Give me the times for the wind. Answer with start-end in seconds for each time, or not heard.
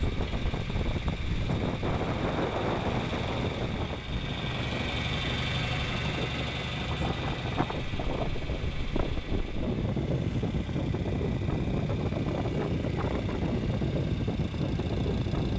0.0-15.5.